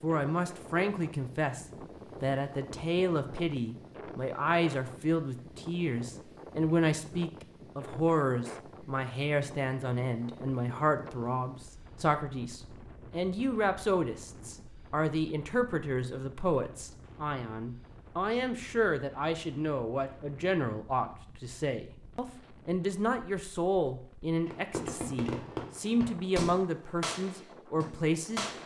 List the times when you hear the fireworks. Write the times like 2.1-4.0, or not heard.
24.4-28.6.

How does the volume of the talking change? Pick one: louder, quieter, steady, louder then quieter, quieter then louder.
steady.